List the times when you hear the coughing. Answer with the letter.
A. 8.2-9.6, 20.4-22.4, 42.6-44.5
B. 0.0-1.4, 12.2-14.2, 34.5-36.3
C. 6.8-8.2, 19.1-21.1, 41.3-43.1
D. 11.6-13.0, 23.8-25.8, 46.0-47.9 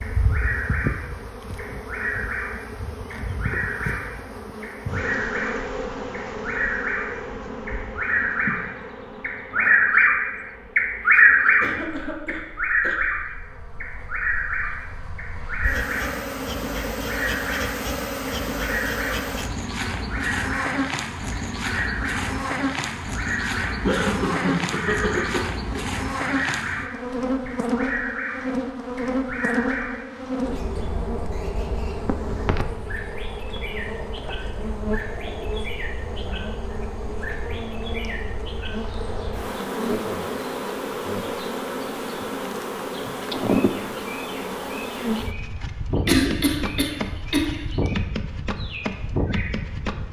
D.